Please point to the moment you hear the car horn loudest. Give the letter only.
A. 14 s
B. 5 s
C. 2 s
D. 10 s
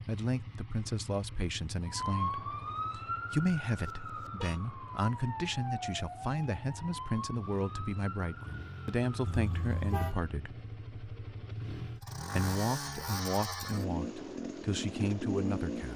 D.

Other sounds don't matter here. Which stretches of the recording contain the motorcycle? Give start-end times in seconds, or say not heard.
0.0-15.9.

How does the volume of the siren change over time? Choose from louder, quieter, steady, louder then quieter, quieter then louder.
quieter.